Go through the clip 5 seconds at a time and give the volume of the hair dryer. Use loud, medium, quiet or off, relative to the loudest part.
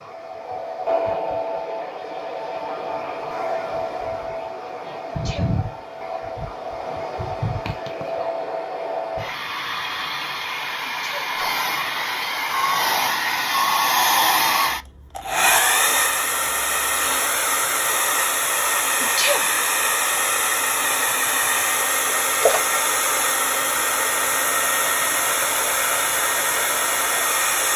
medium, medium, loud, loud, loud, loud.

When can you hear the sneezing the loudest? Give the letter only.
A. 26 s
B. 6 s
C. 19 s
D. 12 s
C.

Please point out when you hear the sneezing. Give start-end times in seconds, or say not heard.
5.0-5.7, 10.8-11.3, 19.0-19.6.